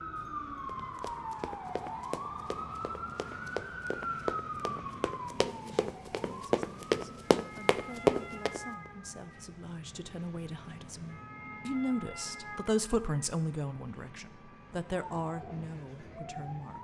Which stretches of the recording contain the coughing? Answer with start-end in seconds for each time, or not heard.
not heard.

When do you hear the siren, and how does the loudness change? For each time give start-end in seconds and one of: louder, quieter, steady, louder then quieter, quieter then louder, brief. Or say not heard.
0.0-16.7 quieter.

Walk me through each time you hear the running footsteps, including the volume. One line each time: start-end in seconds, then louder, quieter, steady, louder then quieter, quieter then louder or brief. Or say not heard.
0.8-8.6 louder.